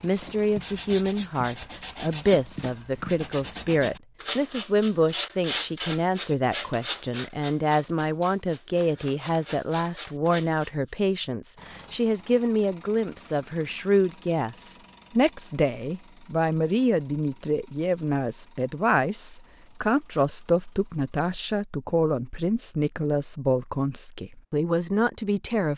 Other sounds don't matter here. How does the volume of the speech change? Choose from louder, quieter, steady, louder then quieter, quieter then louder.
steady.